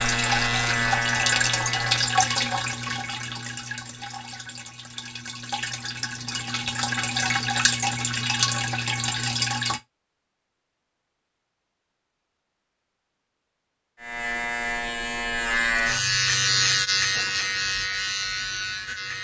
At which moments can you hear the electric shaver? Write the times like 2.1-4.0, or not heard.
0.0-2.1, 14.0-19.1.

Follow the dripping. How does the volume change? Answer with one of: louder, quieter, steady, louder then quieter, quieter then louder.
quieter then louder.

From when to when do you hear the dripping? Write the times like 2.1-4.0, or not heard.
0.0-9.8.